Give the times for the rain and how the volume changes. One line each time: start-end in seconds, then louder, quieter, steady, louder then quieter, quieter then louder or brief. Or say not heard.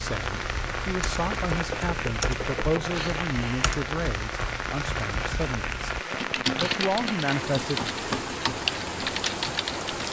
0.0-10.0 steady.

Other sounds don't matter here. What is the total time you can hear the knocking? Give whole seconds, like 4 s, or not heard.
2 s.